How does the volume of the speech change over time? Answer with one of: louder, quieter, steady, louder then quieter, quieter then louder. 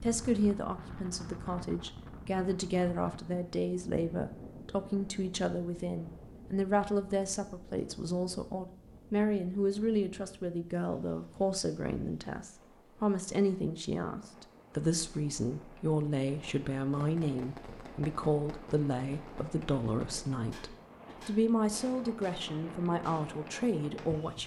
steady.